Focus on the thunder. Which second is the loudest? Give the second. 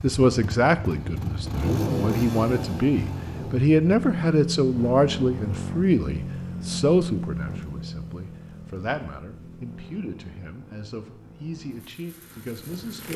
2 s.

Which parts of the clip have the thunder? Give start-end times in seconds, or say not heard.
0.4-3.6.